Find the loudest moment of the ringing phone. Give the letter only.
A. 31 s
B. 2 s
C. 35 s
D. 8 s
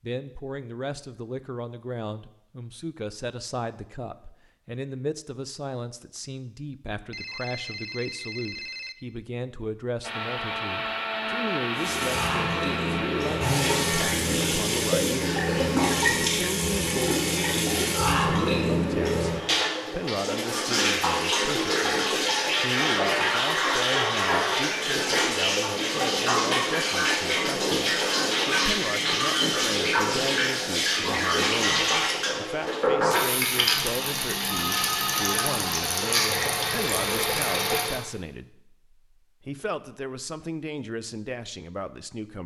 C.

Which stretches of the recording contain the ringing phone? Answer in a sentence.
You can hear the ringing phone from 7.1 to 8.9 s and from 33.8 to 35.5 s.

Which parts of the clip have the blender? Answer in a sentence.
The blender can be heard from 10.0 to 14.1 s.